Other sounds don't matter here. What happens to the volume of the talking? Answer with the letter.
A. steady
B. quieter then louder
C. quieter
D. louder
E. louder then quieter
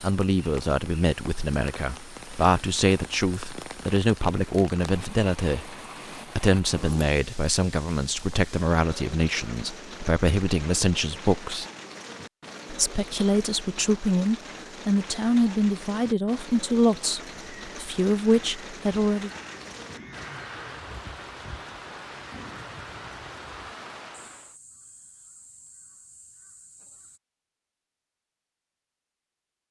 A.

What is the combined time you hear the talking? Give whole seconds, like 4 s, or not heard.
18 s.